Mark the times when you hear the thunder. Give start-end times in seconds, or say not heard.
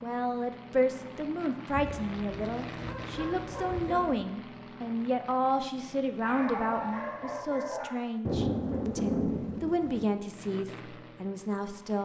8.2-10.1.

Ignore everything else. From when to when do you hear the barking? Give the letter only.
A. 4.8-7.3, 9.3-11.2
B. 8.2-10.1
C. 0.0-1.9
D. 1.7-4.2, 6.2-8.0
D.